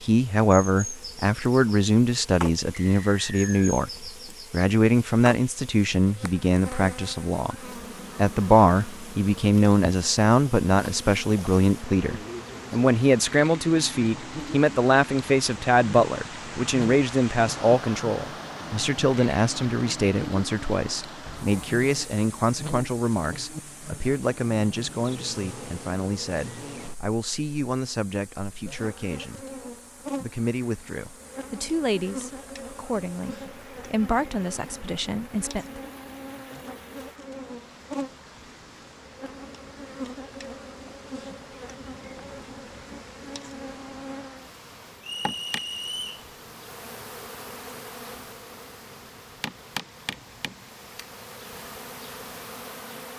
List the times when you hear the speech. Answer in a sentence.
The speech can be heard from 0.0 to 7.5 s, from 8.2 to 29.4 s and from 30.2 to 35.9 s.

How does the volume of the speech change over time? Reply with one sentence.
The volume of the speech goes down.